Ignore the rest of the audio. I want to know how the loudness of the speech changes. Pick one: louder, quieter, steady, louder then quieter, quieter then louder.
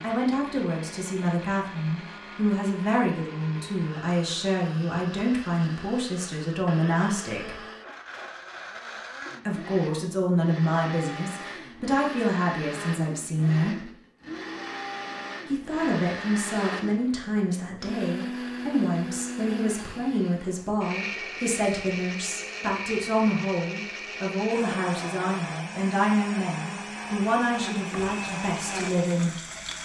steady.